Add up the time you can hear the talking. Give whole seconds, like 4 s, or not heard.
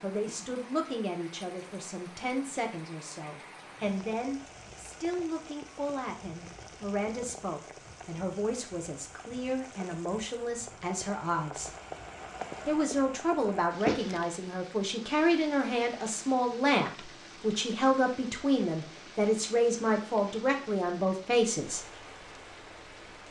21 s.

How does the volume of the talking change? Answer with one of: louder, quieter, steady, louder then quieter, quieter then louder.
louder.